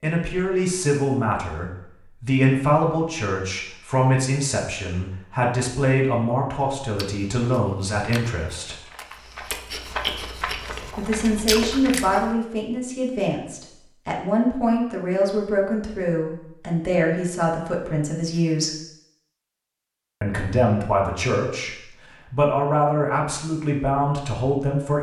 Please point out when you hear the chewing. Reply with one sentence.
You can hear the chewing from 7.0 to 12.3 s.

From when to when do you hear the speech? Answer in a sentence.
You can hear the speech from 0.0 to 8.8 s, from 10.9 to 18.8 s and from 20.2 to 24.9 s.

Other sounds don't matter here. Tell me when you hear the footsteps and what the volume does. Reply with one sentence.
You can't hear the footsteps here.